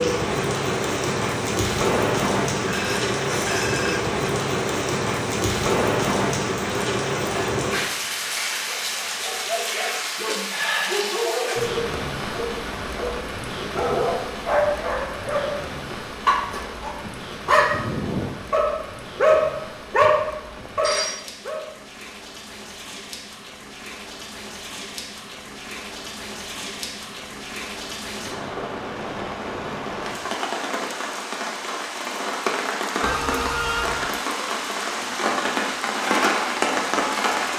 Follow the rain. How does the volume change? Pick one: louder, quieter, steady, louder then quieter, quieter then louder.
quieter then louder.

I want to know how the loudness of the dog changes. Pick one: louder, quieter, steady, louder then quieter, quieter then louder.
louder.